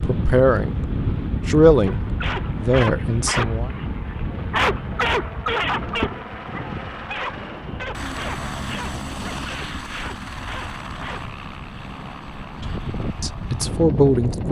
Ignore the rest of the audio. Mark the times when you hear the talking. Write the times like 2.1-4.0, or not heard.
0.0-0.8, 1.4-3.7, 13.2-14.4.